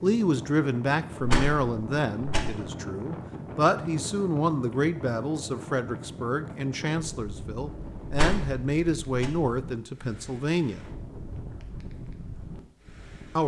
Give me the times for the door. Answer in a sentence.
You can hear the door from 1.2 to 2.5 s and from 8.1 to 9.3 s.